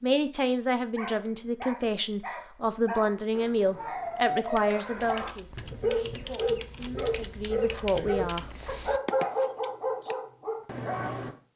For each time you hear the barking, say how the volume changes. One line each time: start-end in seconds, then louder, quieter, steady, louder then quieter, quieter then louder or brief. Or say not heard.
0.9-11.3 louder.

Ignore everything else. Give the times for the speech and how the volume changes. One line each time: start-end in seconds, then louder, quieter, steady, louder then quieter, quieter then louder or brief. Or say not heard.
0.0-8.7 quieter then louder.